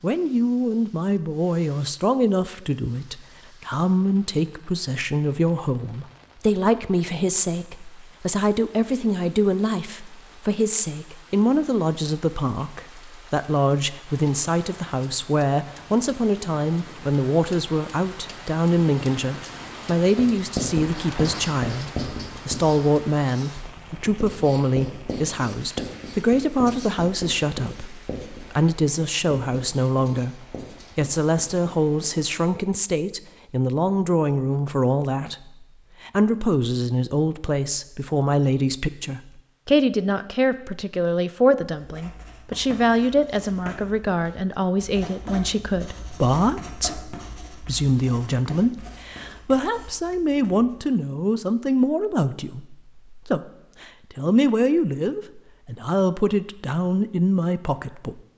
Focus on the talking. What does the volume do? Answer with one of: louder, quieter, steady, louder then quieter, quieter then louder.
steady.